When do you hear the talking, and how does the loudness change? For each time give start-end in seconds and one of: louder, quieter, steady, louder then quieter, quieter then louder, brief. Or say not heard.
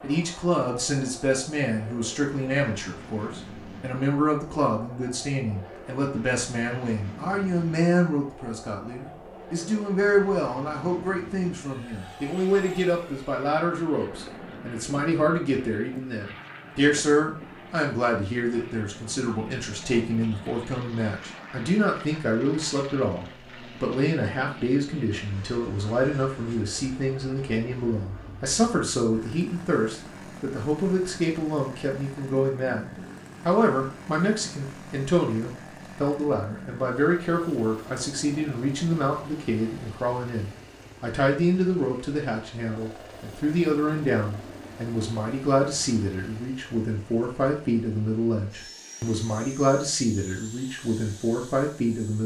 0.0-52.2 steady.